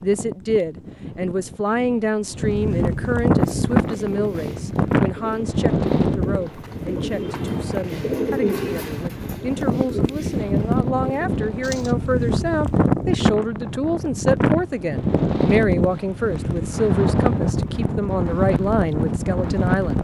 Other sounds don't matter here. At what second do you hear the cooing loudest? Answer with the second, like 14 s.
8 s.